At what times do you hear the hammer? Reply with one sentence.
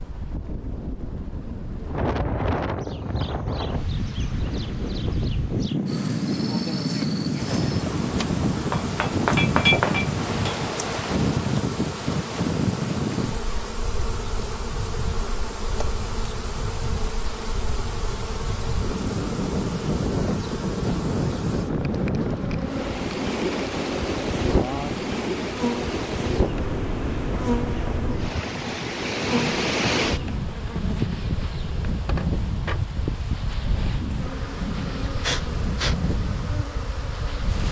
The hammer can be heard from 8.7 to 10.6 s.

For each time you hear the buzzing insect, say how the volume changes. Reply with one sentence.
You can hear the buzzing insect from 2.8 to 37.6 s, at a steady volume.